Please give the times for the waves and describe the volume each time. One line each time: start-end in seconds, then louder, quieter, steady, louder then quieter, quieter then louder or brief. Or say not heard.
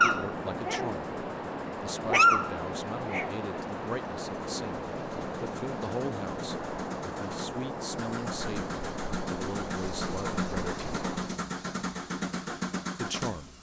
0.0-11.4 steady.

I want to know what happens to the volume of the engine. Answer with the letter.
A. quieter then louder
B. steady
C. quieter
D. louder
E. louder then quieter
D.